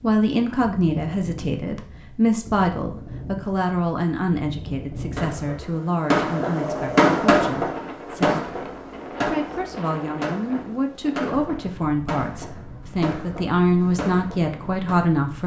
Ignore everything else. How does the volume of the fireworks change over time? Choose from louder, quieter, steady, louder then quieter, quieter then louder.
quieter.